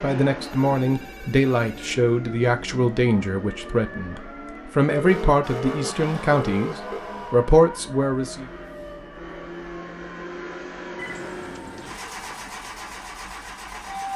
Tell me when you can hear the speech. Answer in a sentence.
The speech can be heard from 0.0 to 8.4 s.